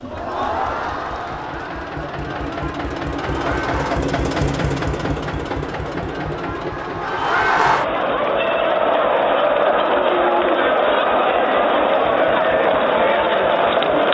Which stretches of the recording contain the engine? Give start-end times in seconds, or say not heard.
0.0-14.1.